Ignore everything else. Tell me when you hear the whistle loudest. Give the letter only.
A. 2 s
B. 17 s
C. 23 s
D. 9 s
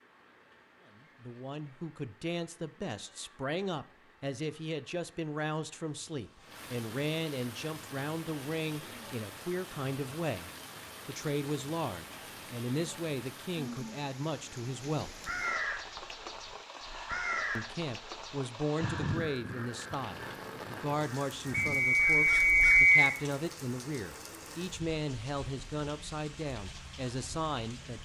C.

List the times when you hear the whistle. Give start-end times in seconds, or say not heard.
21.5-23.1.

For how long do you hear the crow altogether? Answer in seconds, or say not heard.
8 s.